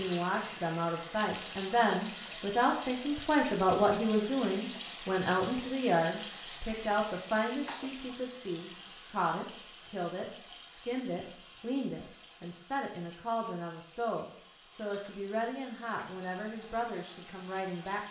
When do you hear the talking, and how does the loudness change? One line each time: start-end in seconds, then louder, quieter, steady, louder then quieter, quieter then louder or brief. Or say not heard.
0.0-18.0 quieter.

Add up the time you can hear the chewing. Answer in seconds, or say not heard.
not heard.